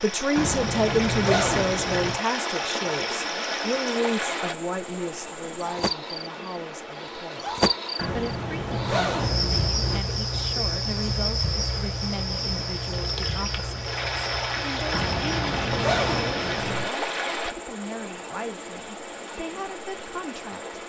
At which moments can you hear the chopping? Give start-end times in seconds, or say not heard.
not heard.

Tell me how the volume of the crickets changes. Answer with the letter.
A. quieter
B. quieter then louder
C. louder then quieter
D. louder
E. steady
C.